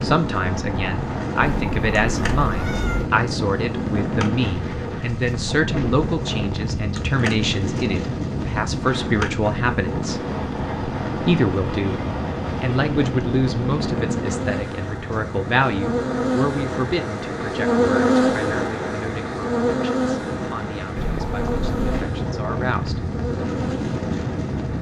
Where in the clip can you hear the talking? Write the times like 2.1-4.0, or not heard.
0.0-10.2, 11.2-12.0, 12.6-23.0.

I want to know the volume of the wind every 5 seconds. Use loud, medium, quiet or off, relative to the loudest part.
loud, loud, loud, medium, loud.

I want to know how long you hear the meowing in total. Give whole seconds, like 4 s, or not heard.
3 s.